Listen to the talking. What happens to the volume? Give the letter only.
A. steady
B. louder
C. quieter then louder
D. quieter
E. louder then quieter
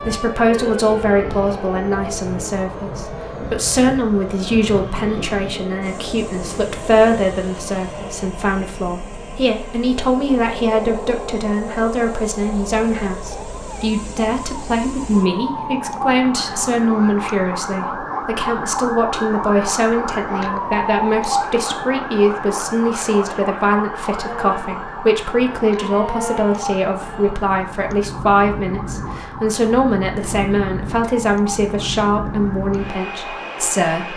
A.